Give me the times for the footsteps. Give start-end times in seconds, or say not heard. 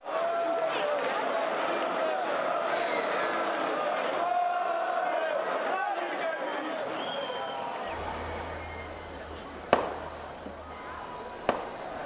not heard.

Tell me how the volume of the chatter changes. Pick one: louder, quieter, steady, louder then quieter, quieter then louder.
quieter.